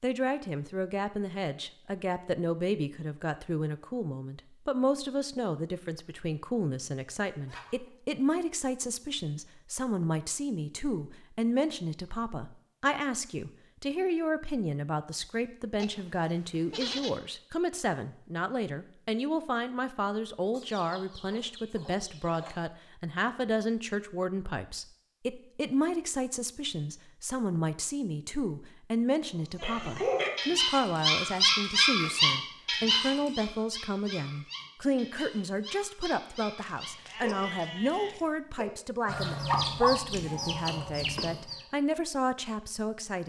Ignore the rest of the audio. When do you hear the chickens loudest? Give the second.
40 s.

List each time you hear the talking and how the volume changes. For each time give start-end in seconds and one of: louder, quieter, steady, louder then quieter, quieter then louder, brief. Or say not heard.
0.0-43.2 steady.